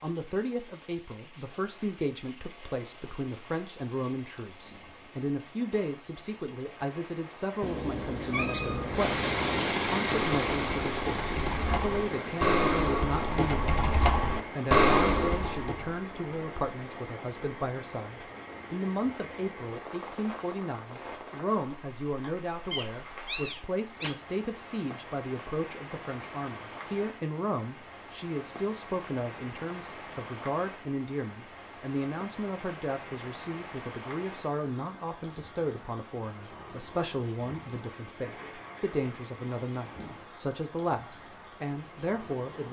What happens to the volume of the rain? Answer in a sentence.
The loudness of the rain goes up, then down.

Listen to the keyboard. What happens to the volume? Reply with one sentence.
The volume of the keyboard goes up.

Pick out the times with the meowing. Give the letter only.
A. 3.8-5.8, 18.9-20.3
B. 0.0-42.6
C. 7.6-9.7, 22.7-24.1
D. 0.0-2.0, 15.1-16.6
C.